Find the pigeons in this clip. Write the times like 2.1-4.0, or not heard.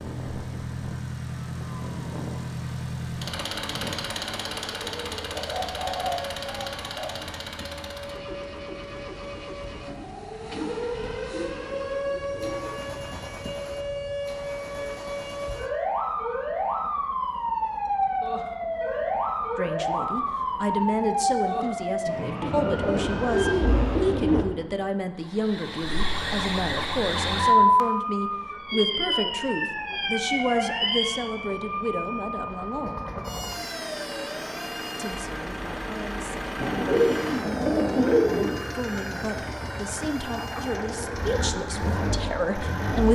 5.3-7.2, 11.3-12.9, 22.4-24.4, 36.6-38.6.